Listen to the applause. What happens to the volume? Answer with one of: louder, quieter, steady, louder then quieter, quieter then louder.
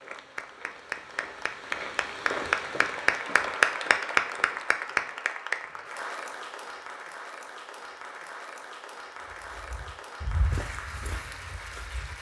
louder then quieter.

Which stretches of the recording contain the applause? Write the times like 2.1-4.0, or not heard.
0.0-12.1.